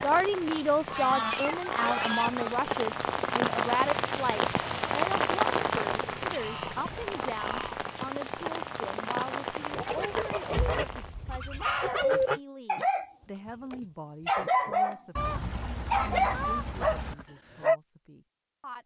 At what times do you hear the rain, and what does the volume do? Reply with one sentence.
You can hear the rain from 0.0 to 11.1 s, getting louder then quieter.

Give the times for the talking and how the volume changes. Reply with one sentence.
The talking can be heard from 0.0 to 15.3 s, getting quieter; and briefly from 16.1 to 18.8 s.